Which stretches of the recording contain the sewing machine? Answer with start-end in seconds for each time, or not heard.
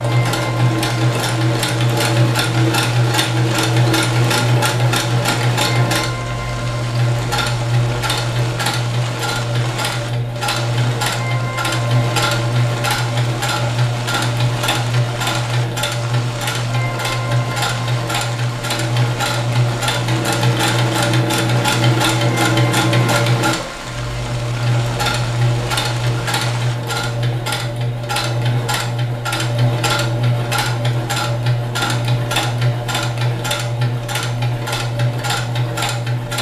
0.0-36.3.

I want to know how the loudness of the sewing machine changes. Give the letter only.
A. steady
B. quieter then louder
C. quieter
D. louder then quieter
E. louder
A.